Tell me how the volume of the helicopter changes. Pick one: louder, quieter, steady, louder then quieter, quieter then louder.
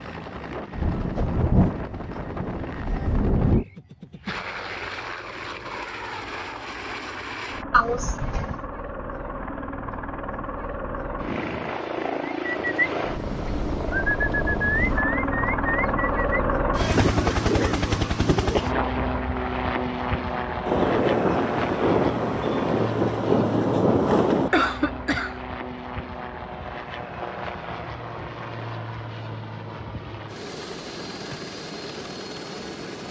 louder then quieter.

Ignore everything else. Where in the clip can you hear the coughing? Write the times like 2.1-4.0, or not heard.
7.7-8.6, 16.9-18.7, 24.5-25.4.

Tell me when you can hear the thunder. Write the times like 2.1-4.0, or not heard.
0.7-3.6, 20.6-24.5.